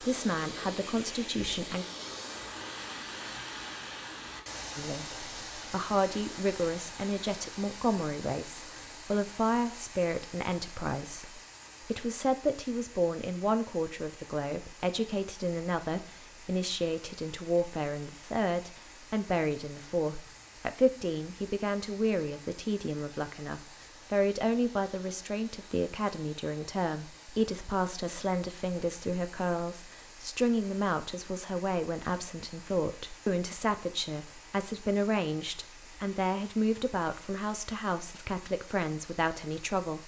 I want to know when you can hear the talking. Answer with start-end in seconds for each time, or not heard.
0.0-1.9, 4.8-40.0.